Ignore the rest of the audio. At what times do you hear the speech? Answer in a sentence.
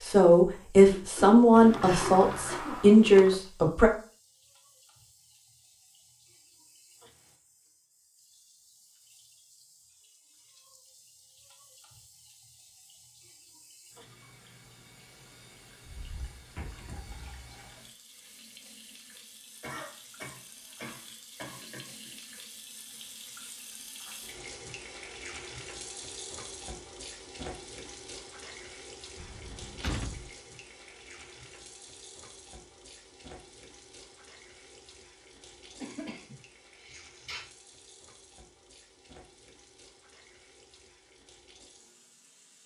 You can hear the speech from 0.0 to 3.9 s.